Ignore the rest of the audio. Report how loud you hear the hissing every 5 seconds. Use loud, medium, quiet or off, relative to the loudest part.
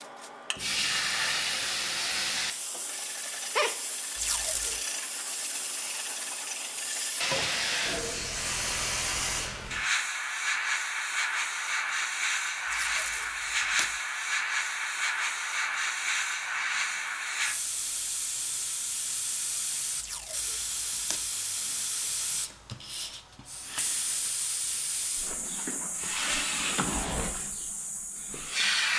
loud, loud, loud, loud, medium, loud.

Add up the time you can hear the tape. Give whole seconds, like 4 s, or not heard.
3 s.